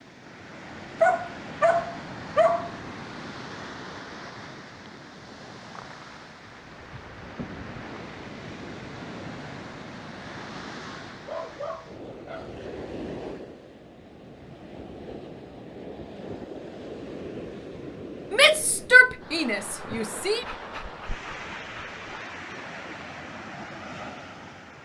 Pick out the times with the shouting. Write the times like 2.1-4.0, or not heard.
18.3-20.4.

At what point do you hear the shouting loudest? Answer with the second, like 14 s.
19 s.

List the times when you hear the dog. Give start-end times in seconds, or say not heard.
1.0-2.8, 11.1-12.7, 20.4-21.9.